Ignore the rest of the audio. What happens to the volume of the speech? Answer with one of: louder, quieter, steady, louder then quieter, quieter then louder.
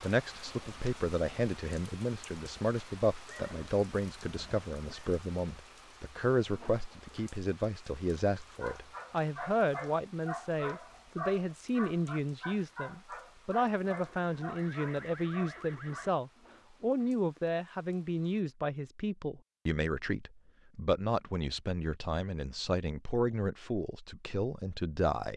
steady.